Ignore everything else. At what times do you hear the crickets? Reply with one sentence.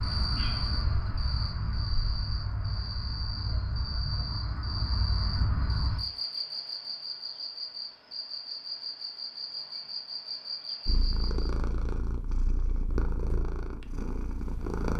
The crickets can be heard from 0.0 to 11.5 s.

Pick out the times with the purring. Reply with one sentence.
You can hear the purring from 10.8 to 14.9 s.